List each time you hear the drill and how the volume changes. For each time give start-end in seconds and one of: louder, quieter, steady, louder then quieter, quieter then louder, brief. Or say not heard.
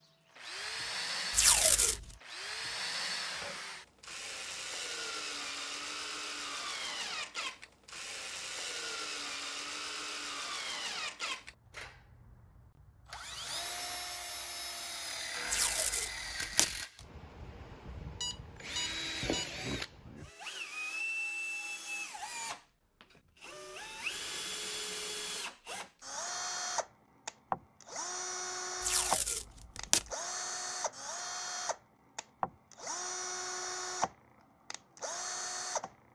0.3-36.1 steady.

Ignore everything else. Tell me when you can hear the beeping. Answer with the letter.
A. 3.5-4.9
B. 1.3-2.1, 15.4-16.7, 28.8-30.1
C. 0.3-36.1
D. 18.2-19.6
D.